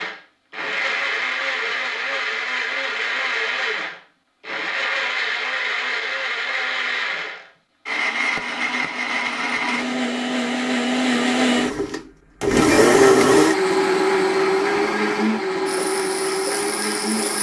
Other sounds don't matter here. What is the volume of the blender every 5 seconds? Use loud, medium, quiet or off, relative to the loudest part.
medium, medium, loud, medium.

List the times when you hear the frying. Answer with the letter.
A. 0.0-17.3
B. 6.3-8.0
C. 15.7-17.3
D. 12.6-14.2
C.